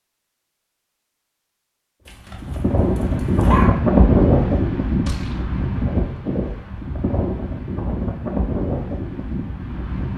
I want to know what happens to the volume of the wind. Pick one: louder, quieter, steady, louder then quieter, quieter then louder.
quieter.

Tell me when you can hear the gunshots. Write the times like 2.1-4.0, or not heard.
5.0-5.5.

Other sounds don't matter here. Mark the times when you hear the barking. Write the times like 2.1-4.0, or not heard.
2.0-3.8.